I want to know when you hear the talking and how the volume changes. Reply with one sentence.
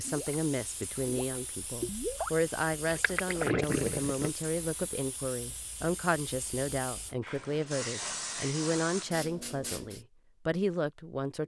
You can hear the talking from 0.0 to 11.4 s, at a steady volume.